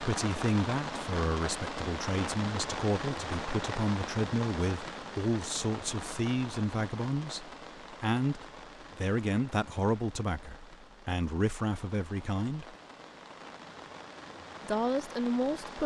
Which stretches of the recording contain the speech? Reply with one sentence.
You can hear the speech from 0.0 to 12.8 s and from 14.7 to 15.8 s.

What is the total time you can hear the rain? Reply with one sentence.
The rain can be heard for 16 seconds in total.